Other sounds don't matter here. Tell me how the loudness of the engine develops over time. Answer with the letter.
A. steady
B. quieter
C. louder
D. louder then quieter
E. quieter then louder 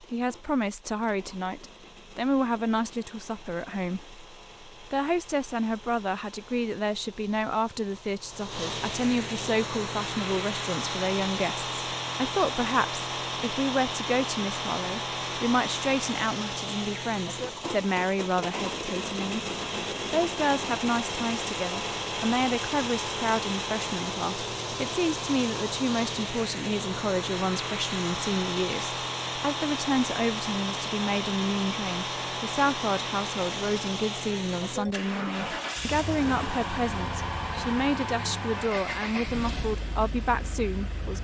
C.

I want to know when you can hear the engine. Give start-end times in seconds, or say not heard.
0.0-41.1.